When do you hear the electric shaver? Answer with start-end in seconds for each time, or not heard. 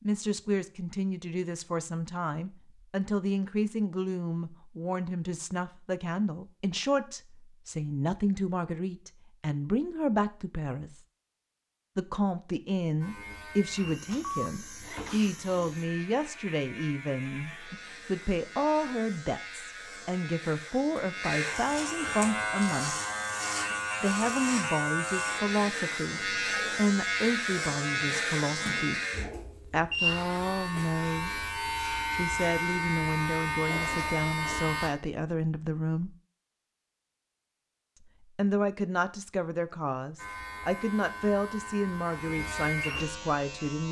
13.0-34.9, 40.1-43.8.